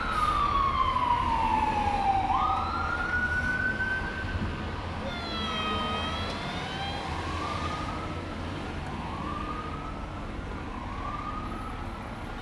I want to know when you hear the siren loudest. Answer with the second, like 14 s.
1 s.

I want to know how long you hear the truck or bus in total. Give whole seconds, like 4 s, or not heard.
12 s.